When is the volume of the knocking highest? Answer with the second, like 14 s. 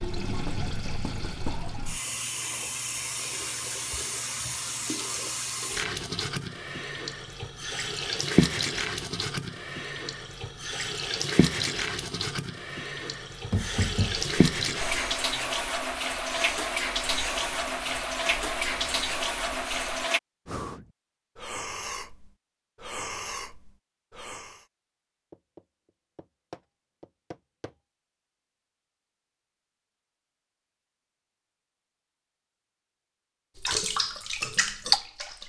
14 s.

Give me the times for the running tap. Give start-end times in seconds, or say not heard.
0.0-20.2, 33.5-35.4.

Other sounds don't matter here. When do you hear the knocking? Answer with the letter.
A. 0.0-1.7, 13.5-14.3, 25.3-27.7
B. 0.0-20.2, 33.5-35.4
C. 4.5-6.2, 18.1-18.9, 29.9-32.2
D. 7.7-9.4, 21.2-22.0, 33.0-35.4
A.